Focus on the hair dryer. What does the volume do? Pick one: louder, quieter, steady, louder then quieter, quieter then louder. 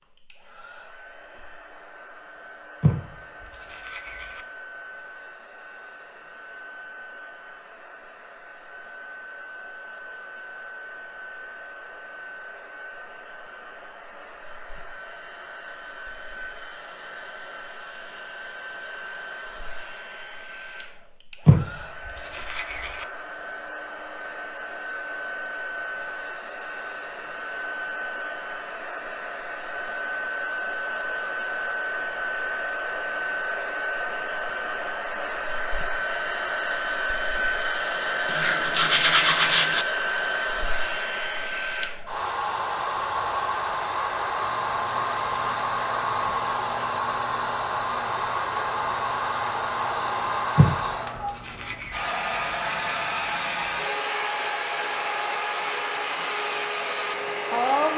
louder.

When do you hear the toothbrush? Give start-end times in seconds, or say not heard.
2.8-4.5, 21.4-23.1, 38.2-39.9, 50.5-52.0.